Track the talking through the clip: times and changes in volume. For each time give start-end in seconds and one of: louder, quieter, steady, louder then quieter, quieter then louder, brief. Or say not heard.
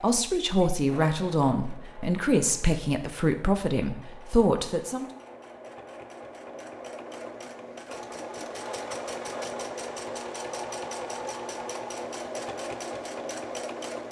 0.0-5.0 steady.